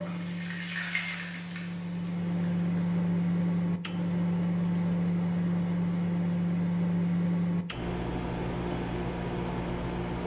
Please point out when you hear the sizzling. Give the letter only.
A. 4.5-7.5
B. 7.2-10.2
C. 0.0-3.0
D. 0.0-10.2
C.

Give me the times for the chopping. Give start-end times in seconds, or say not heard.
not heard.